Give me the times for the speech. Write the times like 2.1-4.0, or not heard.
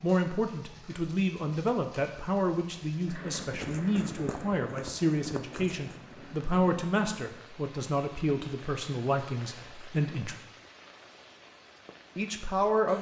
0.0-10.3, 12.2-12.9.